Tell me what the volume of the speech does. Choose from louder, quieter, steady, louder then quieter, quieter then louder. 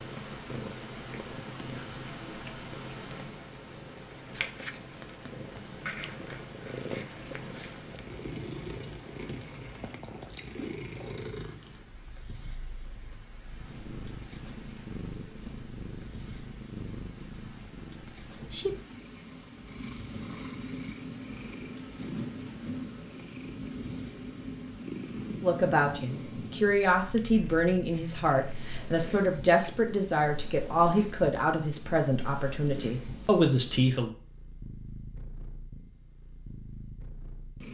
steady.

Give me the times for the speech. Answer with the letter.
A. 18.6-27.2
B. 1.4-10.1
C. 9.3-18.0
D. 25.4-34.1
D.